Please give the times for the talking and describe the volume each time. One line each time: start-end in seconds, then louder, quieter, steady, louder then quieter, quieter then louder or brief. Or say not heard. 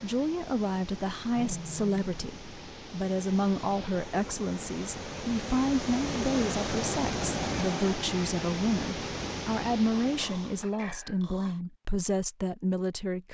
0.0-13.2 steady.